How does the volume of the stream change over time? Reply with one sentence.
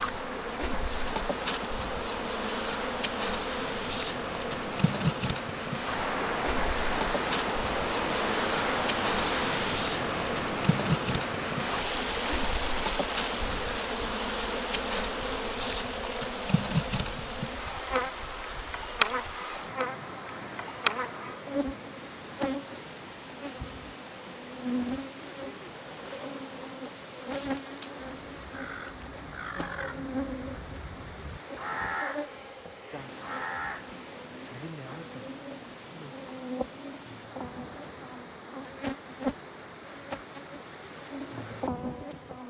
The loudness of the stream goes down.